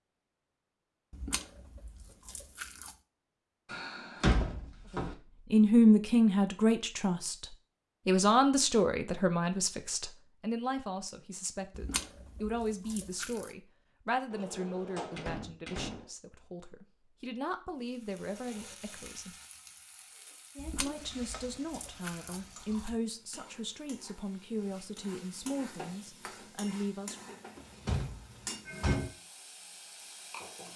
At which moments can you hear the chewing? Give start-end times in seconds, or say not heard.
1.1-3.0, 11.7-13.6, 20.6-23.0.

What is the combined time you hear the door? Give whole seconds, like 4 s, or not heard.
5 s.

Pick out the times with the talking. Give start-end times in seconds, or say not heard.
5.0-7.5, 8.1-19.4, 20.8-27.4.